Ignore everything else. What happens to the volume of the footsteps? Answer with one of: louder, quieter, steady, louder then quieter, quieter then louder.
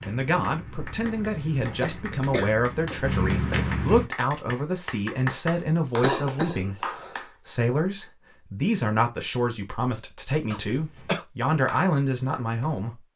louder.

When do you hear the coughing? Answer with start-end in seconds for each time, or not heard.
1.8-2.5, 6.0-7.2, 10.5-11.2.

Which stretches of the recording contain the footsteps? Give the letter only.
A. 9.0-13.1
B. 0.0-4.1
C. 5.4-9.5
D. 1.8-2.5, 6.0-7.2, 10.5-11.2
B.